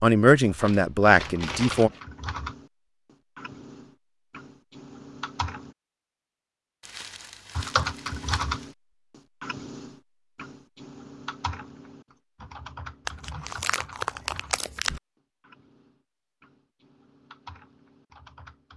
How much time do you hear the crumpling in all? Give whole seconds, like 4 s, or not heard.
5 s.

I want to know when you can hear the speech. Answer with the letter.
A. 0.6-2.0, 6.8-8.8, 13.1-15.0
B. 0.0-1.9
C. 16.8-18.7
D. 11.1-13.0
B.